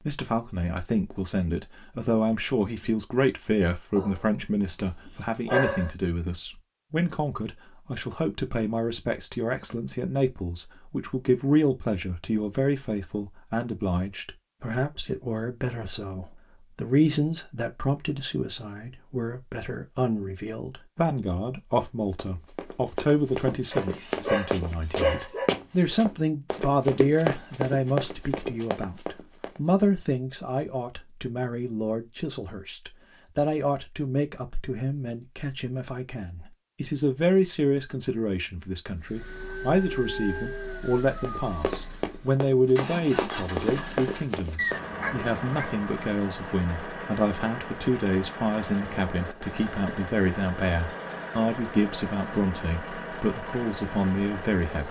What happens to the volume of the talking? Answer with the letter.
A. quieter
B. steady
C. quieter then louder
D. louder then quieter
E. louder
B.